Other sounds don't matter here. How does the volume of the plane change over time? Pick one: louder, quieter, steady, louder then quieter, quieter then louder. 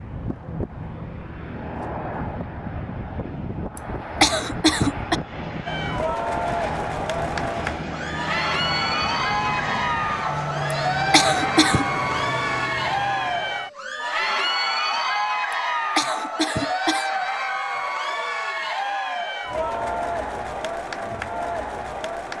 steady.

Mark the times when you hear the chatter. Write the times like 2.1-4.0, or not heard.
5.7-22.3.